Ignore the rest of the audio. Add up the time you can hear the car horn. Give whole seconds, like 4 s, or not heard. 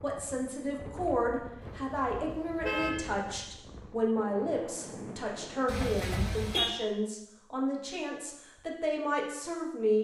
3 s.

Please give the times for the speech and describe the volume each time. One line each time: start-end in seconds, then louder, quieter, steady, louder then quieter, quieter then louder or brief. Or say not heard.
0.0-9.9 steady.